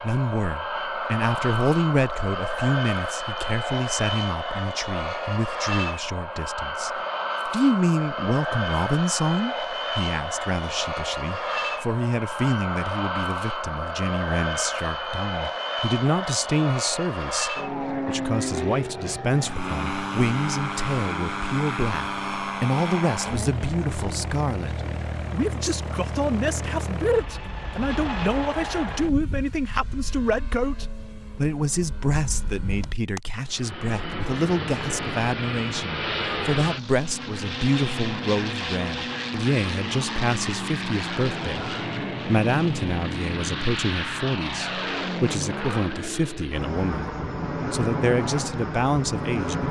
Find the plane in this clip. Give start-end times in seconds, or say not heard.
0.0-49.6.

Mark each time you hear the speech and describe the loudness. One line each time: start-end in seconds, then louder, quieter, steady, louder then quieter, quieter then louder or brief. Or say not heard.
0.0-49.6 steady.